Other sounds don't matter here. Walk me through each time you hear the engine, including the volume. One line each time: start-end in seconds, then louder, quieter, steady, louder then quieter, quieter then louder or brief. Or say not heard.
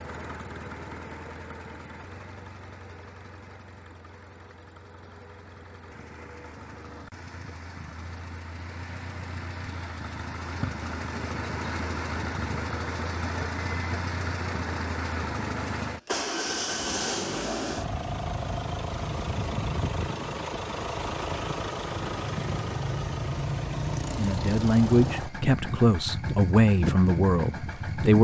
0.0-28.1 louder.